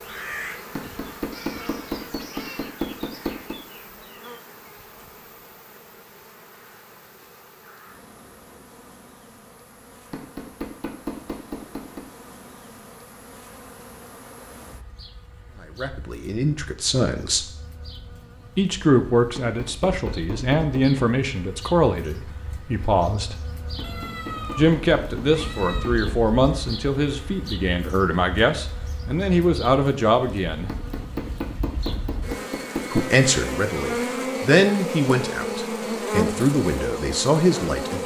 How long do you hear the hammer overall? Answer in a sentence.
You can hear the hammer for 11 seconds altogether.